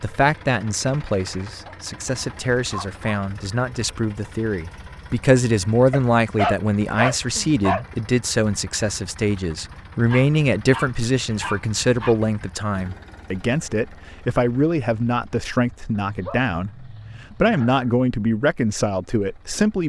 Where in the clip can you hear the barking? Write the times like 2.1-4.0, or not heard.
1.4-3.1, 5.9-7.8, 10.1-12.2, 16.0-17.9.